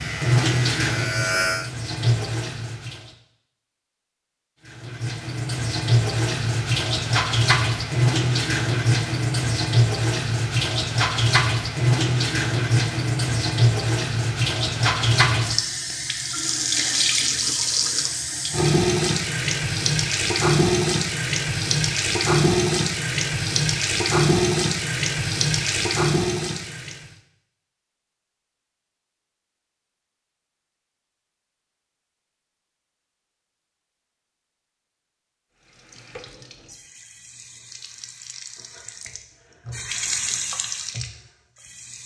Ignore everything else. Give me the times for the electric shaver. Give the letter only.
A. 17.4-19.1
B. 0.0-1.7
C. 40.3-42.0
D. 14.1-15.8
B.